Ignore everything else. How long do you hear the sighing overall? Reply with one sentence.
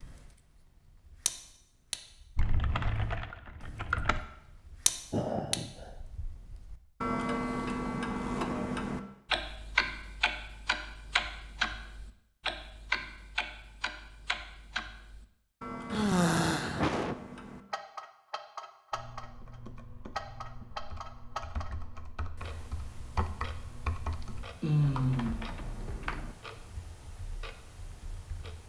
The sighing can be heard for 3 seconds in total.